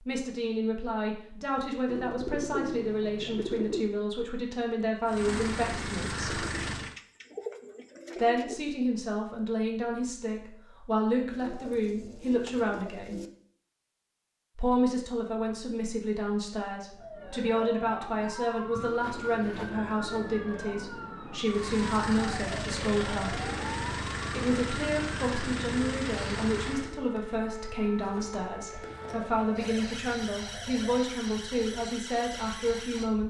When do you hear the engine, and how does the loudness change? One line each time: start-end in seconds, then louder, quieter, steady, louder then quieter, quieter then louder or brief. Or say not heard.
5.0-7.0 brief
21.4-26.9 steady.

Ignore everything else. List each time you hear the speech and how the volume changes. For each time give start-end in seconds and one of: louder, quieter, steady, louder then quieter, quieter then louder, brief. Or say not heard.
0.1-6.3 steady
8.2-13.2 steady
14.6-23.4 steady
24.2-33.2 steady.